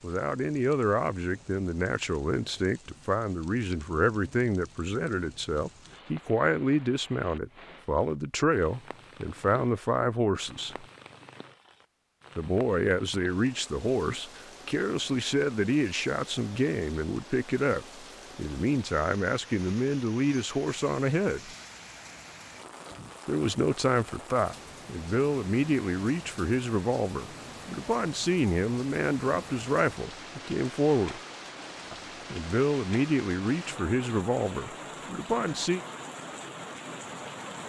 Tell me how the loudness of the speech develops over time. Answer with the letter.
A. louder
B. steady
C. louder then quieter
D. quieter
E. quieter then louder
B.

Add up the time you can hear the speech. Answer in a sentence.
The speech can be heard for 32 seconds in total.